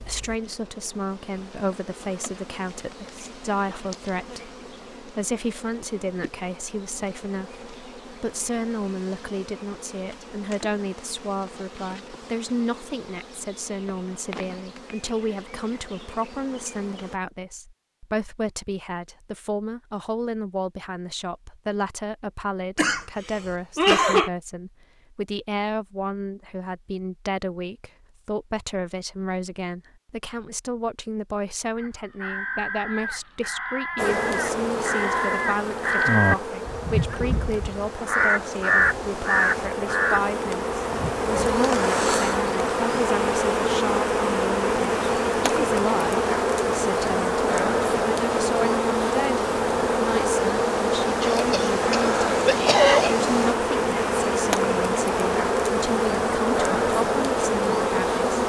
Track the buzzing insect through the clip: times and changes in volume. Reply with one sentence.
You can hear the buzzing insect from 0.0 to 17.2 s, at a steady volume; and from 34.0 to 58.4 s, getting louder.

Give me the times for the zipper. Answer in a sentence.
You can't hear the zipper here.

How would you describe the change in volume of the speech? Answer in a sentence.
The loudness of the speech stays about the same.